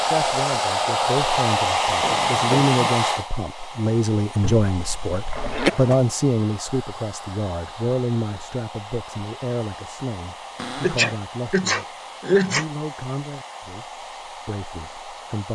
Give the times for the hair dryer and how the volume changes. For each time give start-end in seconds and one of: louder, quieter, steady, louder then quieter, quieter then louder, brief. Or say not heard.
0.0-15.4 quieter.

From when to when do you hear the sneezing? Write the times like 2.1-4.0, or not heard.
4.4-5.7, 10.8-12.7.